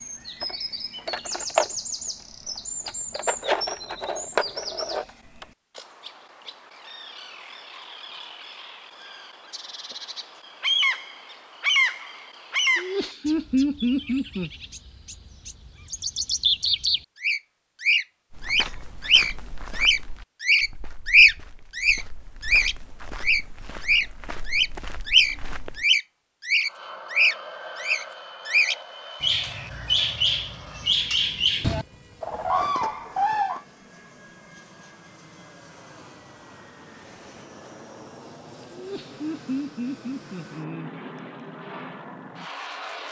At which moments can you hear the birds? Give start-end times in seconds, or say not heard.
0.0-33.6.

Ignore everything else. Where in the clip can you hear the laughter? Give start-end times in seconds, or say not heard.
12.8-14.5, 38.7-41.0.